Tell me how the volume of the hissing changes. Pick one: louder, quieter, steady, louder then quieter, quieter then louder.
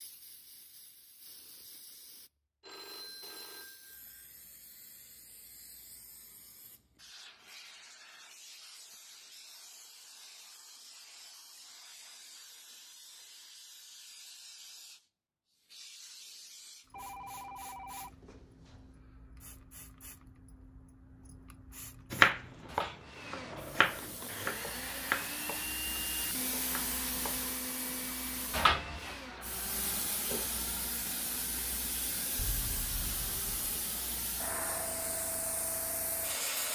louder.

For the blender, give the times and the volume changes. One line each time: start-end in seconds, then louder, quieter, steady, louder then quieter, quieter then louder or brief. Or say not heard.
23.0-36.7 quieter.